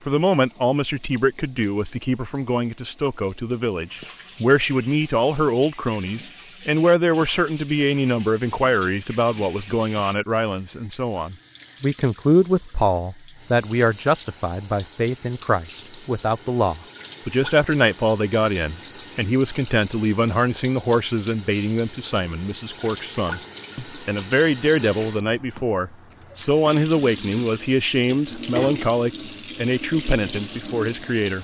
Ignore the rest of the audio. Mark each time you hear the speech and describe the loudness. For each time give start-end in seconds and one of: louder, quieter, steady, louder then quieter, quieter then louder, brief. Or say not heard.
0.1-31.3 steady.